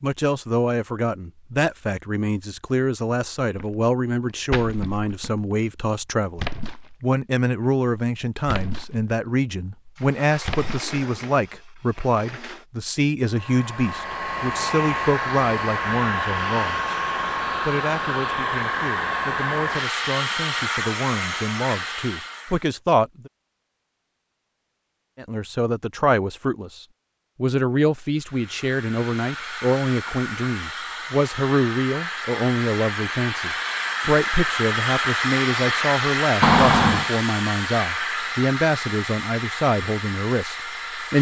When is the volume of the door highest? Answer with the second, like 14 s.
37 s.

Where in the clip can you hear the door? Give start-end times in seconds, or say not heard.
9.9-12.7, 36.4-37.1.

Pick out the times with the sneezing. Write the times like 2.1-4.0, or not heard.
not heard.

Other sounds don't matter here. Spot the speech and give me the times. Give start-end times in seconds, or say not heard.
0.0-16.9, 17.6-23.3, 25.1-41.1.